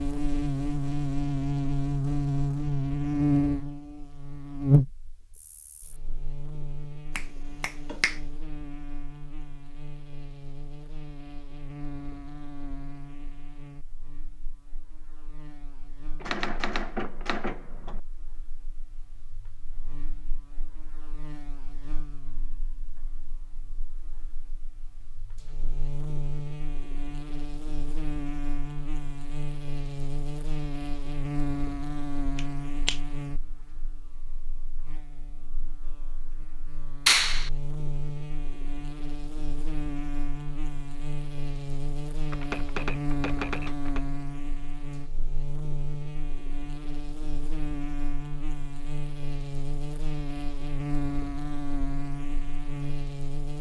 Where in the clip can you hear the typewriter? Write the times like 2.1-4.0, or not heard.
16.2-17.9, 42.3-44.0.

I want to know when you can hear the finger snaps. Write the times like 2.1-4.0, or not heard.
7.2-8.2, 32.4-33.0, 37.0-37.5.